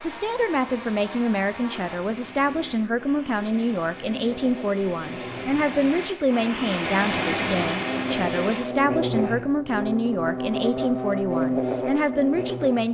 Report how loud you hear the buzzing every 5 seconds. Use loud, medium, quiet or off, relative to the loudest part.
quiet, loud, loud.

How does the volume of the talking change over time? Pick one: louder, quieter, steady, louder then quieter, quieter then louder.
steady.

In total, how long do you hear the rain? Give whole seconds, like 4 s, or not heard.
9 s.